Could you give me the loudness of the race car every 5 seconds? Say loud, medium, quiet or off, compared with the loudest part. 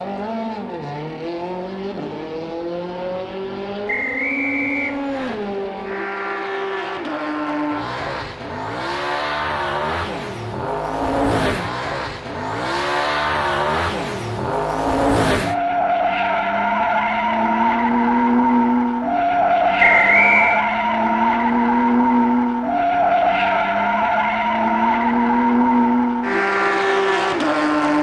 medium, medium, medium, loud, loud, loud.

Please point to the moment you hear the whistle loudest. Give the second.
20 s.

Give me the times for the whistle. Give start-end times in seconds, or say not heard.
3.9-5.3, 19.8-20.6.